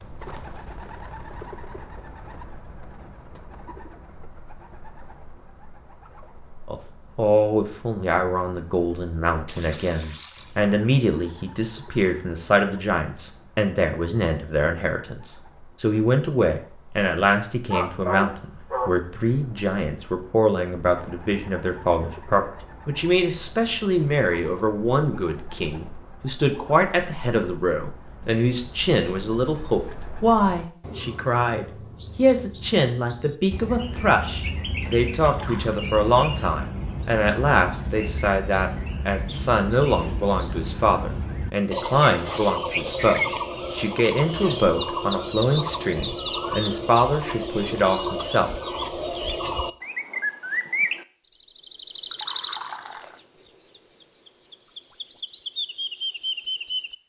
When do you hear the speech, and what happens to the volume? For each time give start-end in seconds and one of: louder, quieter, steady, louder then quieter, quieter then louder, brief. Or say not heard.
6.7-48.5 steady.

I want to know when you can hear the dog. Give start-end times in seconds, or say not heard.
17.7-18.9.